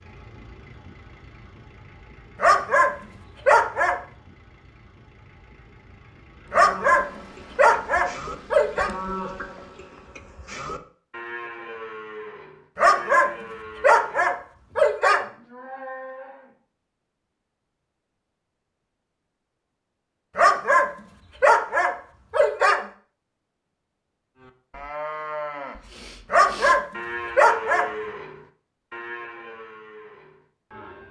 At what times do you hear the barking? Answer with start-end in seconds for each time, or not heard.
2.4-4.0, 6.5-8.9, 12.8-15.2, 20.4-22.8, 26.3-27.9.